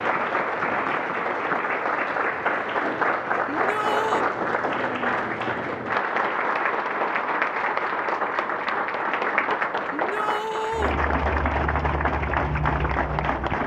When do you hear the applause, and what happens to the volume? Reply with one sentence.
You can hear the applause from 0.0 to 13.6 s, at a steady volume.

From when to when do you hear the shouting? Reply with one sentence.
The shouting can be heard from 3.5 to 4.2 s and from 9.9 to 10.9 s.